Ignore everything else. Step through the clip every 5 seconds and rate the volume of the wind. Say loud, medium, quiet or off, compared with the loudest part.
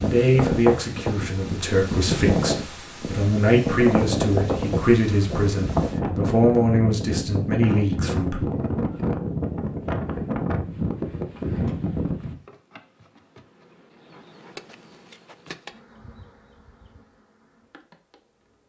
loud, loud, loud, off.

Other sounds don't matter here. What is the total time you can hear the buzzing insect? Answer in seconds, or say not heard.
7 s.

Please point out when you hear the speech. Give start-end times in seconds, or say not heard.
0.0-8.4.